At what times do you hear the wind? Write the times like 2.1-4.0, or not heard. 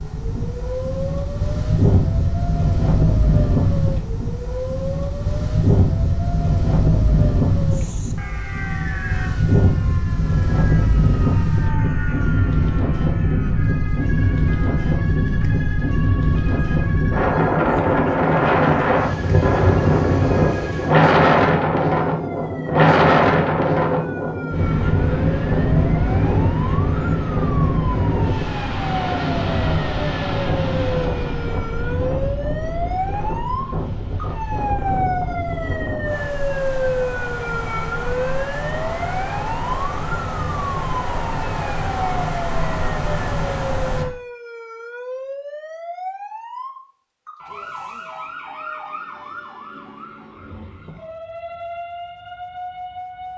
0.0-44.0.